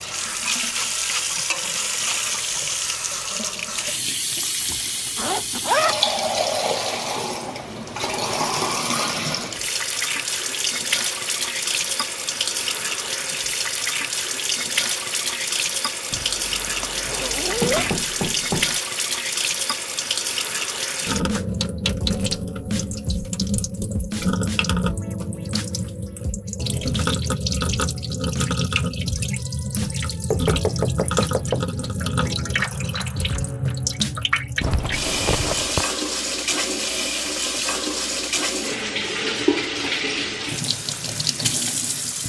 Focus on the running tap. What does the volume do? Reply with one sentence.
The volume of the running tap stays about the same.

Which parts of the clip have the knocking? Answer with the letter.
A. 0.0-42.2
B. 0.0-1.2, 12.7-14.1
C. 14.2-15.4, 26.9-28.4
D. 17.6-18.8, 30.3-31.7
D.